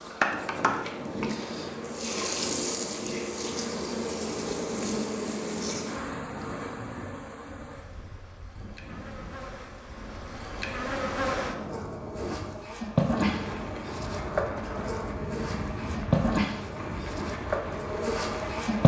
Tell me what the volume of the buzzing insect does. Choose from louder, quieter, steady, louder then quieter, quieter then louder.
quieter then louder.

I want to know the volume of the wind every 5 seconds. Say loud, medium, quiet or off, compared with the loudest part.
loud, medium, loud, loud.